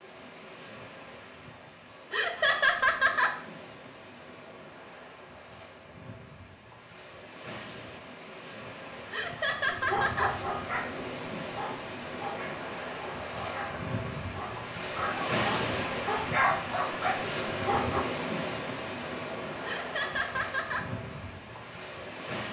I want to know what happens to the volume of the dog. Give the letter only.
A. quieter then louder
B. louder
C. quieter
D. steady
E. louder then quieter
A.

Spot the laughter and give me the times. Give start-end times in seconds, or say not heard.
2.1-3.4, 9.1-10.3, 19.6-20.9.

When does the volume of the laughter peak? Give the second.
3 s.